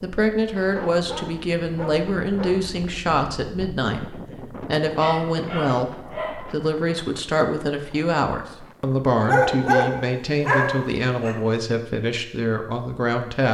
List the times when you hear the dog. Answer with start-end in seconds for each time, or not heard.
0.6-2.5, 5.0-6.5, 9.2-11.3.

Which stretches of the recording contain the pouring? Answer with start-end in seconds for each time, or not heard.
not heard.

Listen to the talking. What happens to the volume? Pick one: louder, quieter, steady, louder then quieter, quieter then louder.
steady.